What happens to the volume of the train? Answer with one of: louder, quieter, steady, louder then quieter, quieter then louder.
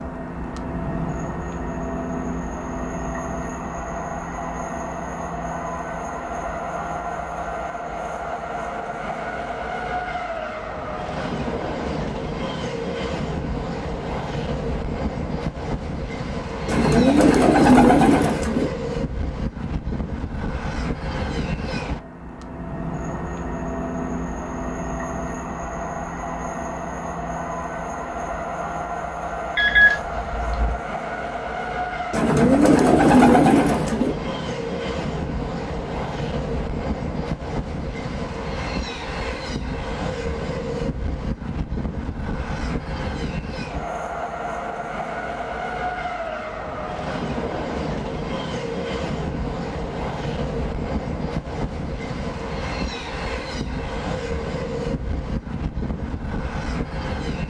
steady.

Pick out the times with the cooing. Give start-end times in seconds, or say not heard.
16.6-18.7, 32.1-34.1.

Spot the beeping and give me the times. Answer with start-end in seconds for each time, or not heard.
29.6-30.8.